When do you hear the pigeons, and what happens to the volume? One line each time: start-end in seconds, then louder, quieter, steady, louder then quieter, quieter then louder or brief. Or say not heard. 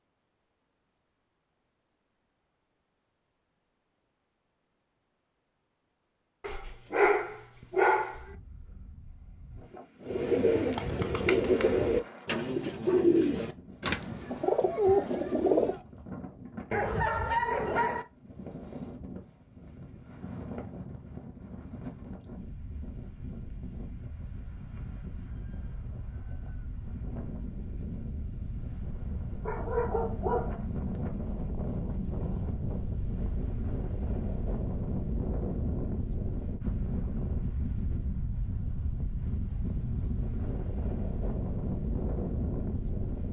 10.1-15.8 quieter then louder.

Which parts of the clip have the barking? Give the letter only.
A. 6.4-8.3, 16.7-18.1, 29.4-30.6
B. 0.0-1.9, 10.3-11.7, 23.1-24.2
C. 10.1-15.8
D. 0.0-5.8
A.